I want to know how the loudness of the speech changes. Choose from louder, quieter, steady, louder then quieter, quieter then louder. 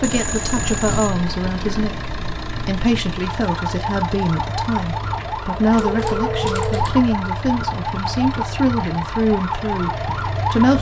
steady.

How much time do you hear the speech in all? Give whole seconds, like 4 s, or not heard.
11 s.